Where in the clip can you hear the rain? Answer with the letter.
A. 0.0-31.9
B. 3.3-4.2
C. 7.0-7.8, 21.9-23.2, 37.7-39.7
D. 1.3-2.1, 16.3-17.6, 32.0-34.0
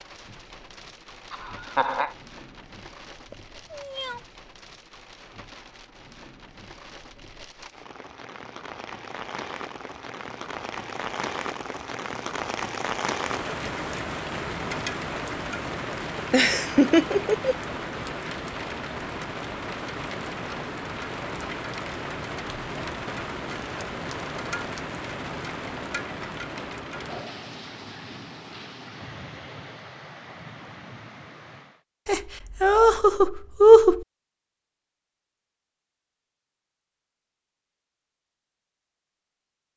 A.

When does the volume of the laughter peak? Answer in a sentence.
The volume of the laughter peaks at 34 seconds.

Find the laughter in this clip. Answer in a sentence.
You can hear the laughter from 1.3 to 2.1 s, from 16.3 to 17.6 s and from 32.0 to 34.0 s.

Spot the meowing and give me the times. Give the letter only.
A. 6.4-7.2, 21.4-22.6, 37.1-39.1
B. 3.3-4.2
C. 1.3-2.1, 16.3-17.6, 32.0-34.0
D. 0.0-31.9
B.